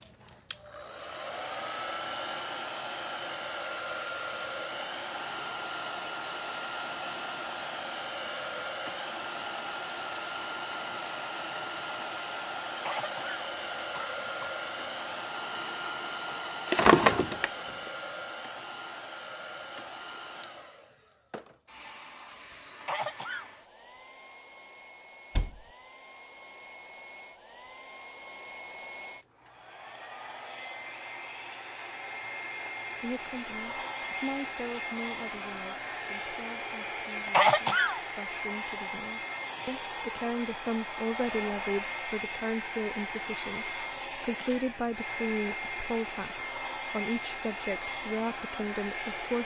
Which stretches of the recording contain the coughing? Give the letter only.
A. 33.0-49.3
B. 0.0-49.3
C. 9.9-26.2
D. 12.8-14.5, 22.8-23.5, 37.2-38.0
D.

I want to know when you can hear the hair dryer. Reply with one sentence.
The hair dryer can be heard from 0.0 to 49.3 s.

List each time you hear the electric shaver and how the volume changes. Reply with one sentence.
You can't hear the electric shaver here.